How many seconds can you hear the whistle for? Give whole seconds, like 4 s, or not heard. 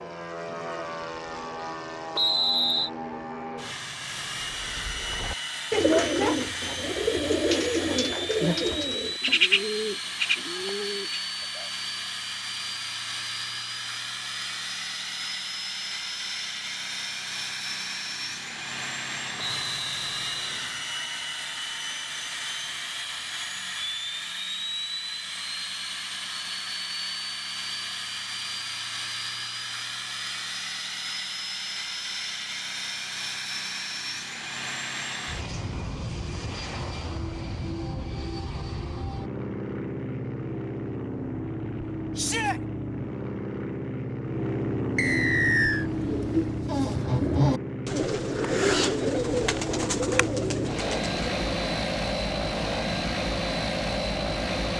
3 s.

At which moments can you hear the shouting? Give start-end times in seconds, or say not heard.
42.1-42.6.